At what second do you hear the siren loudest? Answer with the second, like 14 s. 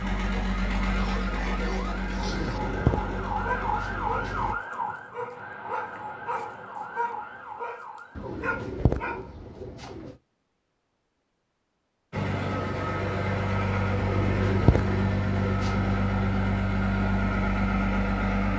4 s.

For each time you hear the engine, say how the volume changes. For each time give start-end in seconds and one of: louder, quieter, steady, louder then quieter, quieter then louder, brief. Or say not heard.
0.0-4.5 quieter
12.1-18.5 steady.